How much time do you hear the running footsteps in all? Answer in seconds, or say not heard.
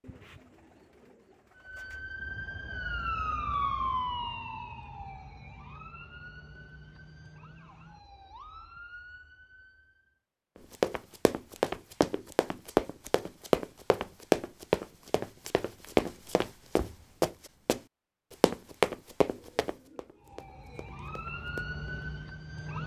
11 s.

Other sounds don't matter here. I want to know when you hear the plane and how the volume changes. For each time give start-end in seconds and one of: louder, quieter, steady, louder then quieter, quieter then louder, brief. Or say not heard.
not heard.